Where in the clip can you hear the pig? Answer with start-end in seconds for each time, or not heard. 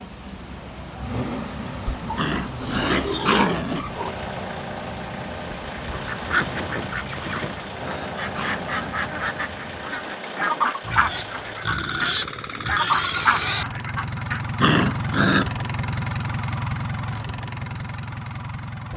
1.9-4.2, 10.8-13.7.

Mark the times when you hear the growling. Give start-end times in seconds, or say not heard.
2.1-3.9, 7.2-8.9, 14.6-15.5.